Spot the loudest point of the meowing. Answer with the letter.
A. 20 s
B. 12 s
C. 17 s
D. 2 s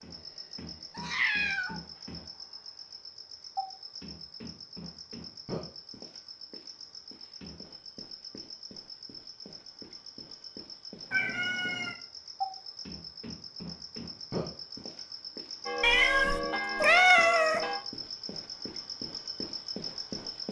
C.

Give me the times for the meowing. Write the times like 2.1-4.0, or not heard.
0.9-1.8, 11.1-11.9, 15.8-17.6.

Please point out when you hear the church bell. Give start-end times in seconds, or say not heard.
15.7-17.8.